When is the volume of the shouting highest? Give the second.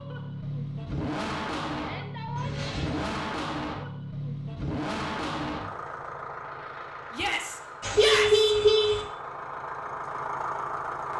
8 s.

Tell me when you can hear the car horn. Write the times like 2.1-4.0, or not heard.
2.4-3.1, 7.8-9.1.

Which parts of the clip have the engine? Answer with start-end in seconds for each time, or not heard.
0.0-11.1.